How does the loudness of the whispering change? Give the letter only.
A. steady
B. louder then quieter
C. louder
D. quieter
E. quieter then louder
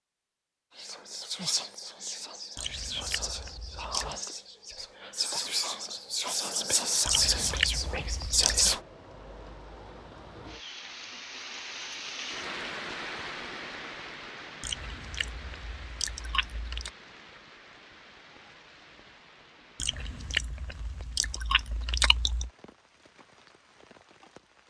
C.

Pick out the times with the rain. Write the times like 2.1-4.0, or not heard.
6.8-24.6.